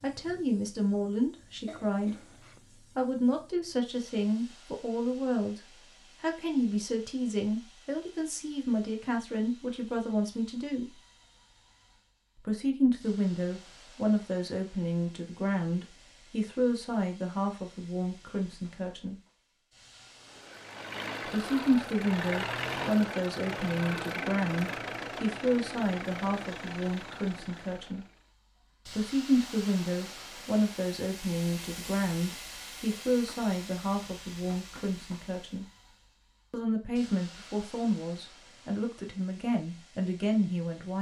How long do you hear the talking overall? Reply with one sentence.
You can hear the talking for 35 seconds altogether.